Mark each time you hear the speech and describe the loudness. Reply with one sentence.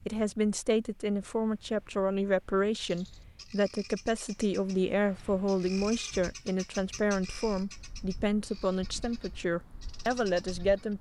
The speech can be heard from 0.1 to 10.9 s, at a steady volume.